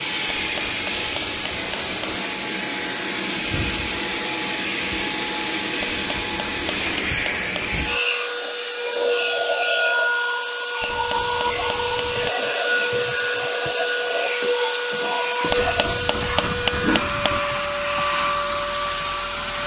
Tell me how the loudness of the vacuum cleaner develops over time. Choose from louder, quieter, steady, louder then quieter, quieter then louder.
steady.